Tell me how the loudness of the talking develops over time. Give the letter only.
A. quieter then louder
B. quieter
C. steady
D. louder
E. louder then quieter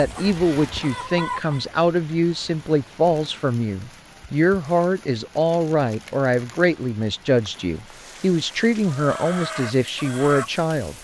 C.